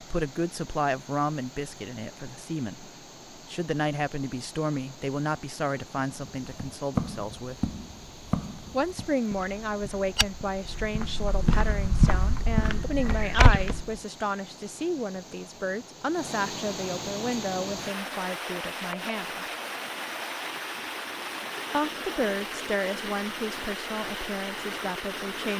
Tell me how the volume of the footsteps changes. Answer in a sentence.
The volume of the footsteps goes down, then up.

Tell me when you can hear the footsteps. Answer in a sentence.
You can hear the footsteps from 6.0 to 13.8 s.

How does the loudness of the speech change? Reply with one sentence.
The volume of the speech stays about the same.